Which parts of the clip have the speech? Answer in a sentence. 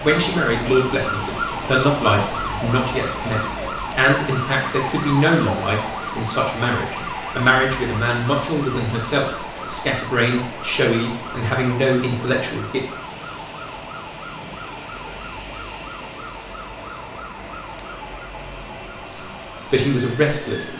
You can hear the speech from 0.0 to 12.8 s and from 19.7 to 20.7 s.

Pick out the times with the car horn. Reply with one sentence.
You can't hear the car horn here.